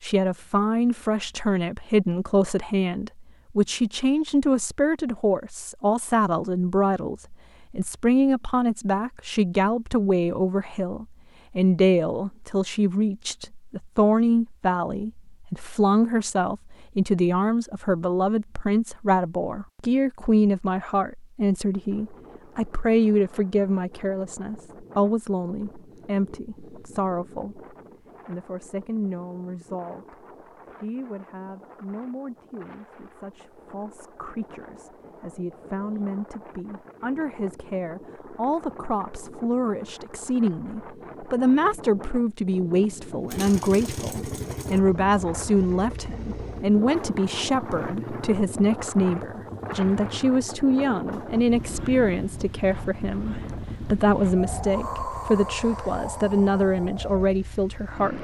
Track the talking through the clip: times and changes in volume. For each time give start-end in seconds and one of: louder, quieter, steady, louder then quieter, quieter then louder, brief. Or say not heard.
0.0-58.2 quieter then louder.